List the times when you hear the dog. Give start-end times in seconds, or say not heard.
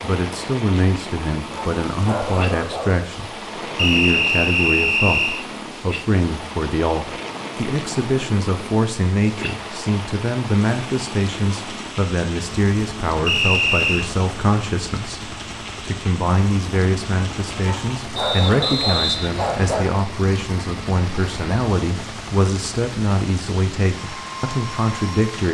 1.5-3.0, 17.6-20.1.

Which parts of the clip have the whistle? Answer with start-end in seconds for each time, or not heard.
3.8-5.5, 13.2-14.1, 18.1-19.9.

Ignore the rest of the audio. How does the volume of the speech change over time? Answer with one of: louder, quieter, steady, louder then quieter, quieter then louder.
steady.